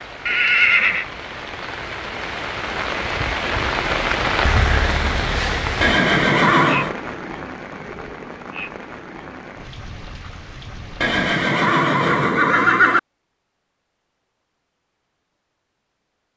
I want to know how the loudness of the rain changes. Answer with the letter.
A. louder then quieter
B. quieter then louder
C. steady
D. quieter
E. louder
A.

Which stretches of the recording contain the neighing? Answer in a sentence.
You can hear the neighing from 0.2 to 1.1 s, from 5.8 to 7.0 s and from 11.0 to 13.0 s.